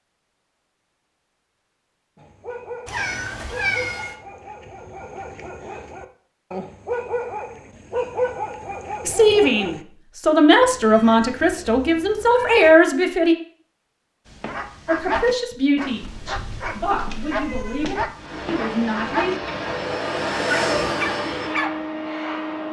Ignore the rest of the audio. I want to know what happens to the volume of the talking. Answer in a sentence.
The volume of the talking goes down.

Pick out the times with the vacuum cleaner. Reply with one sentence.
The vacuum cleaner can be heard from 18.1 to 22.6 s.